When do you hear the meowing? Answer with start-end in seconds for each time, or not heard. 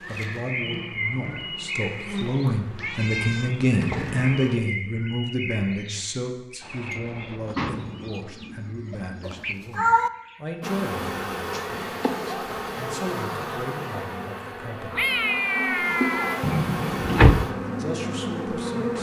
2.8-3.5, 9.2-10.1, 14.9-16.4.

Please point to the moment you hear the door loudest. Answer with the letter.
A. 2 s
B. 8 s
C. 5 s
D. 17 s
D.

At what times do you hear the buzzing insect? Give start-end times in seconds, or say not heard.
0.0-4.5, 10.6-18.9.